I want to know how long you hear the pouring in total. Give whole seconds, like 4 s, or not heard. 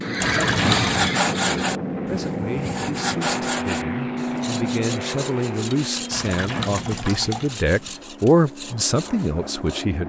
2 s.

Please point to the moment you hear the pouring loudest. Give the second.
1 s.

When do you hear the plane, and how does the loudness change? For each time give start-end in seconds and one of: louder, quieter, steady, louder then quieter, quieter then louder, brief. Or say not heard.
0.0-10.0 quieter.